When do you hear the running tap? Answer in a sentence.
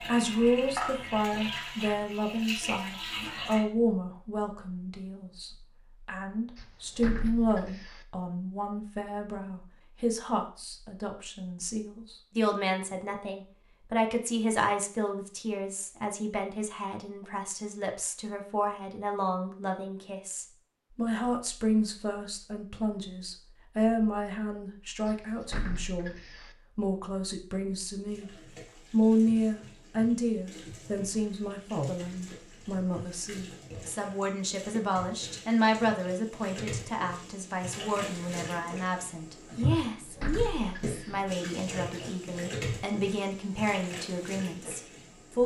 You can hear the running tap from 0.0 to 3.6 s and from 28.1 to 45.4 s.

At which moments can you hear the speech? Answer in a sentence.
The speech can be heard from 0.0 to 26.1 s, from 26.8 to 28.3 s and from 28.9 to 45.4 s.